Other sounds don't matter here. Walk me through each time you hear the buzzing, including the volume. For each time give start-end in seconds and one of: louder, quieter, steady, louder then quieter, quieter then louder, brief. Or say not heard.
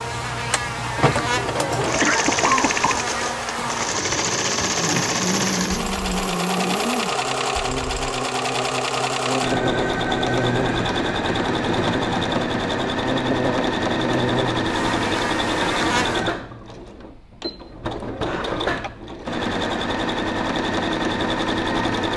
0.0-16.2 steady.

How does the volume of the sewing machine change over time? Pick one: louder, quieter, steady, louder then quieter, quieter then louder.
steady.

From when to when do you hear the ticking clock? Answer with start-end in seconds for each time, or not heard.
not heard.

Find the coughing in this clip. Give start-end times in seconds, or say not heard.
2.0-3.0, 18.2-18.9.